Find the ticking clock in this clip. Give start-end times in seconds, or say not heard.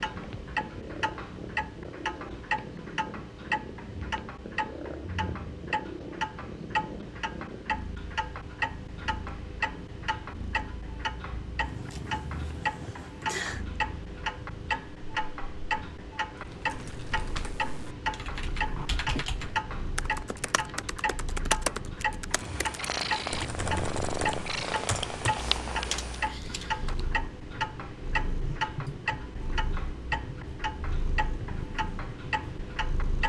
0.0-33.2.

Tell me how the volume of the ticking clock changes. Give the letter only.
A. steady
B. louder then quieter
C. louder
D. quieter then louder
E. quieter
A.